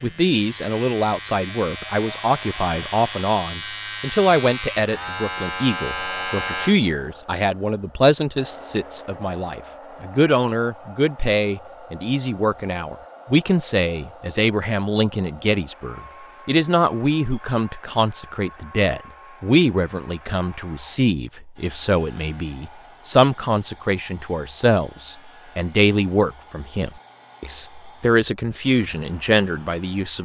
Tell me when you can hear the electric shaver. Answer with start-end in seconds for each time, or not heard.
0.0-6.8.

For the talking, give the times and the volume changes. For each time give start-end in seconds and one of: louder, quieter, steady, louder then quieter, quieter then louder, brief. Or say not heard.
0.0-30.2 steady.